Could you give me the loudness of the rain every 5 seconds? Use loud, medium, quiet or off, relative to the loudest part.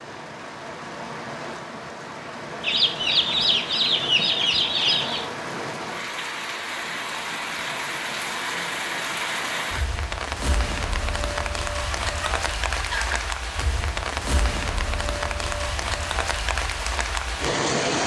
medium, loud, loud, loud.